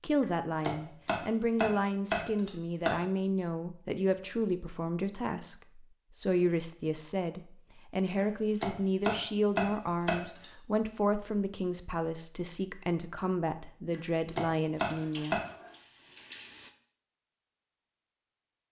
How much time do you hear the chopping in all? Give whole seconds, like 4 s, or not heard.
6 s.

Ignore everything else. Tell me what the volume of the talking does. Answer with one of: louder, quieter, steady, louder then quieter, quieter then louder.
steady.